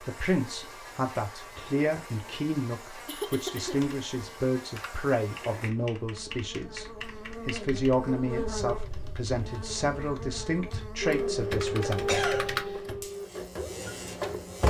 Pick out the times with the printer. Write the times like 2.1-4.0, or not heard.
11.0-14.6.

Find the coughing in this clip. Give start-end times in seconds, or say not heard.
3.0-3.8, 11.8-12.6.